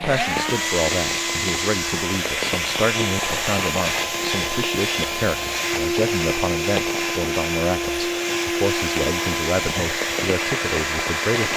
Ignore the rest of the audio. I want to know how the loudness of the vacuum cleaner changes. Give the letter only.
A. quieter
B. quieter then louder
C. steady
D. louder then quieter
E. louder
C.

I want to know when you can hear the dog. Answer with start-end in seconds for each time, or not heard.
not heard.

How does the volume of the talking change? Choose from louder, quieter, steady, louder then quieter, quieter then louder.
steady.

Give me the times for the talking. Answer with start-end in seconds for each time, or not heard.
0.0-11.5.